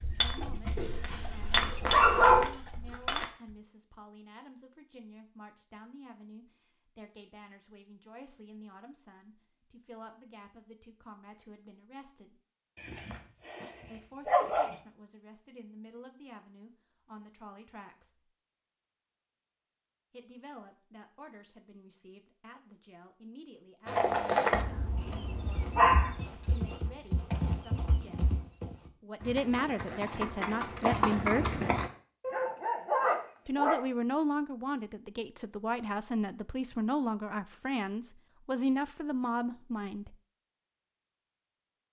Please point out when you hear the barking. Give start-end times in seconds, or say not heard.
0.8-2.5, 12.8-14.8, 24.5-26.1, 32.2-33.8.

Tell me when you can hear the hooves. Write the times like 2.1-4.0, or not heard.
0.0-3.5, 23.9-31.9.